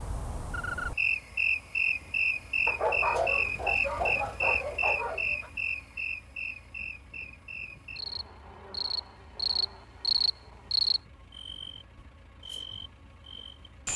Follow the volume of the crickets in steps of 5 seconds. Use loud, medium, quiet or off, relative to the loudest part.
loud, medium, loud.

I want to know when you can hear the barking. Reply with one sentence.
You can hear the barking from 2.6 to 5.5 s.